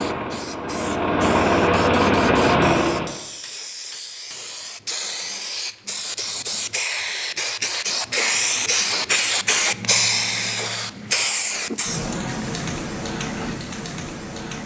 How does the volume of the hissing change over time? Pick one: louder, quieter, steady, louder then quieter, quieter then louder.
louder then quieter.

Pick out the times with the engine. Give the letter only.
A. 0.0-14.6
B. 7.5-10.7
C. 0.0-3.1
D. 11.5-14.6
C.